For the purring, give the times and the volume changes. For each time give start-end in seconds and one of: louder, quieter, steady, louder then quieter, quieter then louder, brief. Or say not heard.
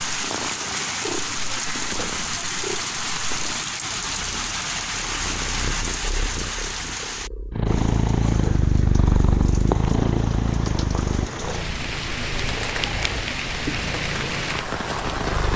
0.1-15.5 louder then quieter.